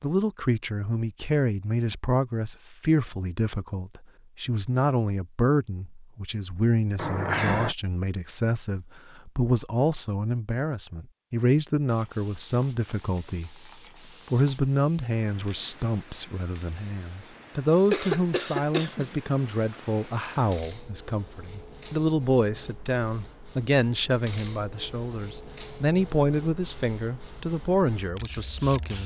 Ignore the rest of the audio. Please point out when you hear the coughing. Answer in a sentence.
You can hear the coughing from 7.0 to 7.8 s and from 17.9 to 19.1 s.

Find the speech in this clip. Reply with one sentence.
You can hear the speech from 0.0 to 13.7 s and from 14.3 to 29.0 s.